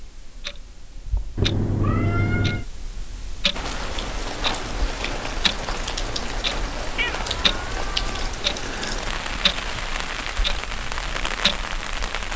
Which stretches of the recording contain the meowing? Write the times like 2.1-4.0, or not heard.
1.4-2.6, 6.9-8.3.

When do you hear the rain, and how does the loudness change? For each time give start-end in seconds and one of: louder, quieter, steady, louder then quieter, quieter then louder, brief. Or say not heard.
3.5-12.3 steady.